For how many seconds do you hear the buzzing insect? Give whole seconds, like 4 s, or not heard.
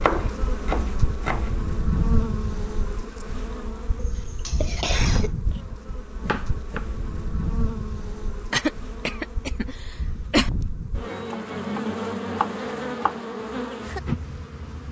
15 s.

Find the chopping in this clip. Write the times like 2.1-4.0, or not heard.
0.0-1.5, 5.1-6.8, 11.1-13.2.